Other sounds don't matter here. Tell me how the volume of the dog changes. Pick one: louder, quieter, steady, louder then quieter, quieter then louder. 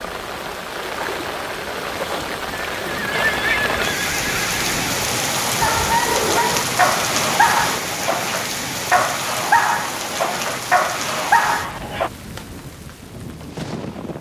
steady.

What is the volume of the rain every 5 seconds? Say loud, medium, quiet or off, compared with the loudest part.
loud, loud, medium.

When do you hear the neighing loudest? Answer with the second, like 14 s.
3 s.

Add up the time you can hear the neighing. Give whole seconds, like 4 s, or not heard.
3 s.